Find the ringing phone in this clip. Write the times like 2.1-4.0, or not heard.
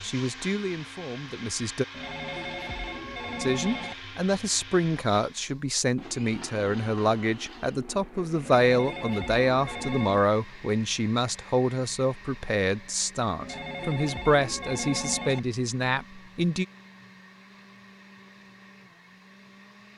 1.9-4.0, 8.4-10.2, 13.4-15.4.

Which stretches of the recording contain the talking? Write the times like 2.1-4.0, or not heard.
0.0-1.9, 3.4-16.6.